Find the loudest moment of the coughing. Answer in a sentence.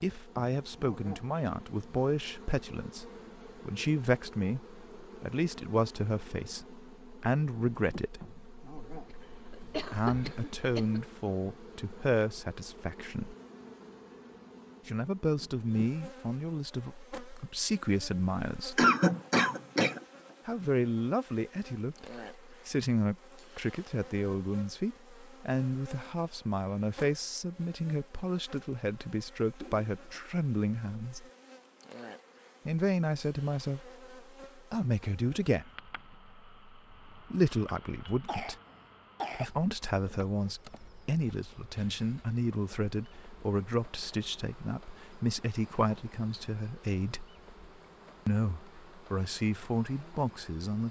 The volume of the coughing peaks at 19 seconds.